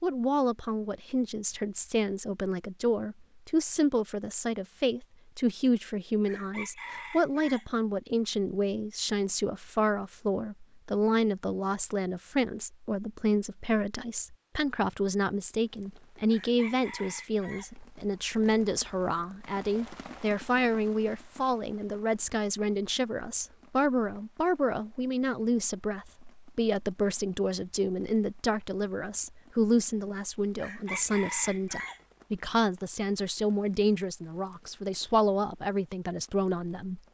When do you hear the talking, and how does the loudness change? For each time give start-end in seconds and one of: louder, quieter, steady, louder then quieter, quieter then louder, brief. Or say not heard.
0.0-37.0 steady.